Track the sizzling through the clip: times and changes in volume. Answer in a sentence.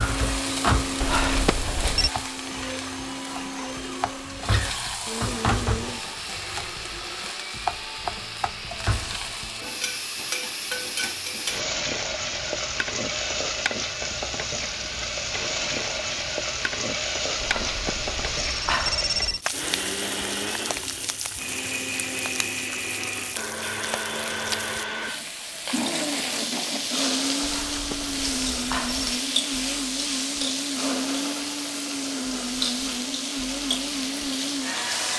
The sizzling can be heard from 0.0 to 35.1 s, at a steady volume.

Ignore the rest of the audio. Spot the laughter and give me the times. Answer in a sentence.
You can't hear the laughter here.